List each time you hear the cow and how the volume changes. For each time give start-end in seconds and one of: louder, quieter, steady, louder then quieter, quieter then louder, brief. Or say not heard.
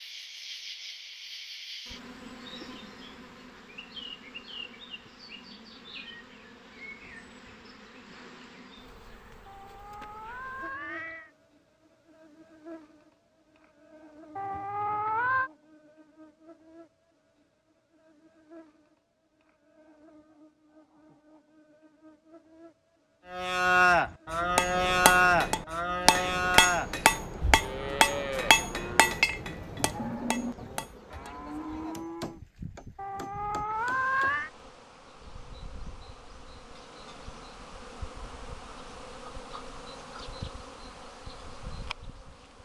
23.3-32.4 quieter.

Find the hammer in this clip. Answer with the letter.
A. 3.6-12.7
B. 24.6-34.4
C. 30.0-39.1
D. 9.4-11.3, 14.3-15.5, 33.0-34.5
B.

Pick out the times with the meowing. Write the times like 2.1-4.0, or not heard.
9.4-11.3, 14.3-15.5, 33.0-34.5.